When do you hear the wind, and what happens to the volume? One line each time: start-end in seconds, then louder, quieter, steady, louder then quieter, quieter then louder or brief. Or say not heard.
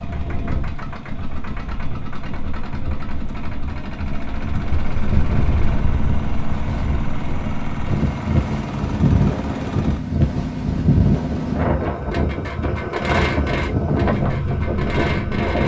0.0-15.6 louder.